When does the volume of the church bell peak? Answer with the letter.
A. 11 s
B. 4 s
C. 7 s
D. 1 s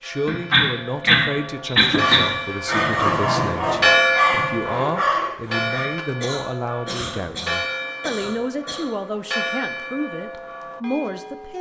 B.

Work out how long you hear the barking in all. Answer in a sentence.
The barking can be heard for 4 seconds in total.